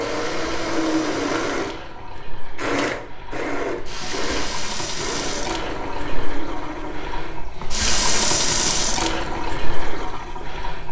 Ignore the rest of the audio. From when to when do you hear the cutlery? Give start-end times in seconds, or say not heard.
not heard.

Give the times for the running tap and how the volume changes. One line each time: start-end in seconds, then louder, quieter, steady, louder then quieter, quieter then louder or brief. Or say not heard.
0.0-10.8 louder.